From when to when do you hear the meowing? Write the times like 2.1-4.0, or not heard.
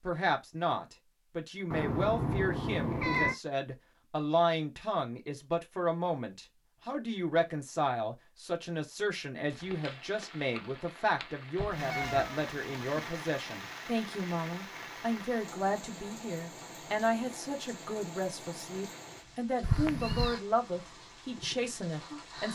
1.7-3.4, 11.8-13.1, 19.6-20.4.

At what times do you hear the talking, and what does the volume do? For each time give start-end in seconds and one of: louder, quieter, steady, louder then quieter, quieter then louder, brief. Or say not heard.
0.0-22.5 steady.